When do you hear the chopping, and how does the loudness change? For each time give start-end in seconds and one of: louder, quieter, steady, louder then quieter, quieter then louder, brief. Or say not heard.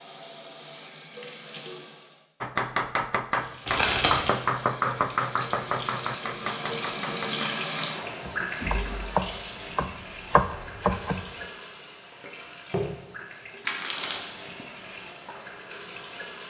2.4-11.4 quieter then louder.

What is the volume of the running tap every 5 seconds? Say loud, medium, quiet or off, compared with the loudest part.
medium, loud, medium, medium.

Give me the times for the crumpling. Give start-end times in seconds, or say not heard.
3.6-4.3, 13.7-14.2.